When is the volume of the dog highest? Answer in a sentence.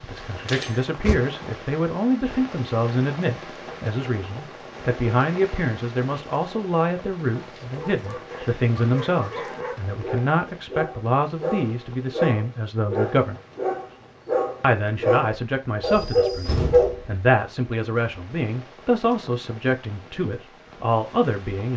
The loudest moment of the dog is at 17 seconds.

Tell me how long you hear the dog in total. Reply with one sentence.
You can hear the dog for 10 seconds altogether.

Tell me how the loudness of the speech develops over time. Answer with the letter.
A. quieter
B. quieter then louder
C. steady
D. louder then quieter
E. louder
C.